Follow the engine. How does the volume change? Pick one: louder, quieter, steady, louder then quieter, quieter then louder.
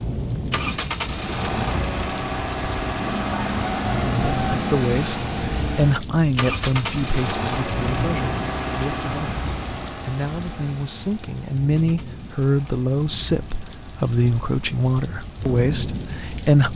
quieter.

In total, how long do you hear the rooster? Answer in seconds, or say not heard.
2 s.